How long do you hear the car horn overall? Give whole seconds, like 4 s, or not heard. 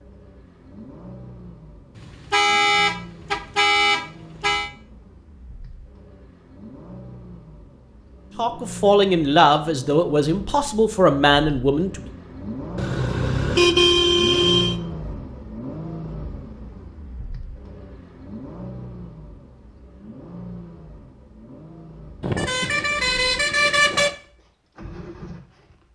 7 s.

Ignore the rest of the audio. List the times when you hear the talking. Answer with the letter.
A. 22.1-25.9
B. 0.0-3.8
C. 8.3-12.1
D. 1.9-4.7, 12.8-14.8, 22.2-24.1
C.